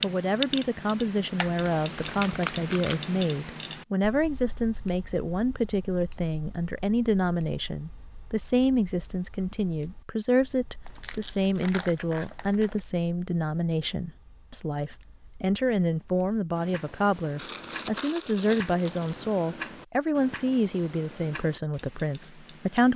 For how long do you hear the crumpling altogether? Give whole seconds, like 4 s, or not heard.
5 s.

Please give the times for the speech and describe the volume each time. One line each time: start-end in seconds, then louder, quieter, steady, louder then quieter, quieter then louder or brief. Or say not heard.
0.0-22.9 steady.